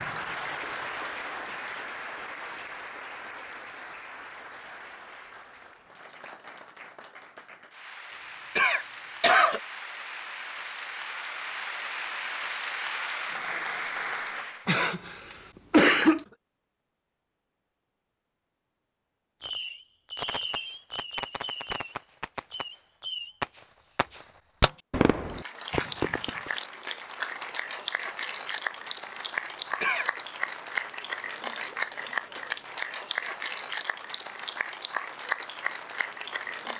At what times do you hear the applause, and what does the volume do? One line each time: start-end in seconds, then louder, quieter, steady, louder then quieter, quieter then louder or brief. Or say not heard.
0.0-14.7 quieter then louder
25.2-36.7 steady.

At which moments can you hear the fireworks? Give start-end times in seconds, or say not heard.
19.4-26.5.